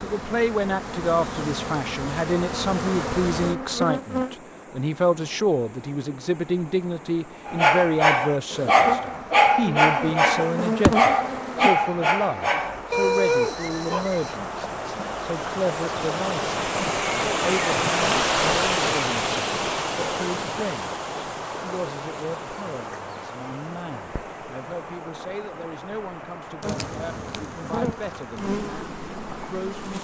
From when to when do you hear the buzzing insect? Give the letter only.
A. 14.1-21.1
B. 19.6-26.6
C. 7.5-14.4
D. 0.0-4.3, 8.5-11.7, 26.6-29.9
D.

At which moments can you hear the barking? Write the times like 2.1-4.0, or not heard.
7.5-14.4.